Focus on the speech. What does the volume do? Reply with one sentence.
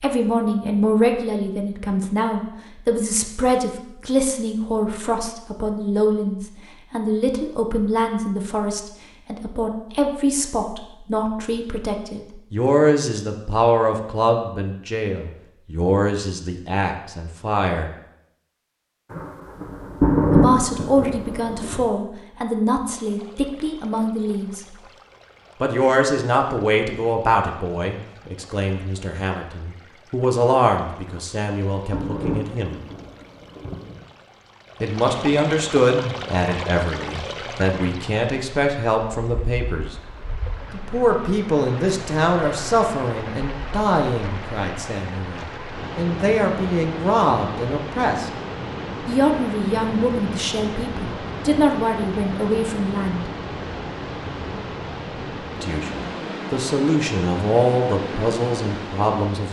The loudness of the speech stays about the same.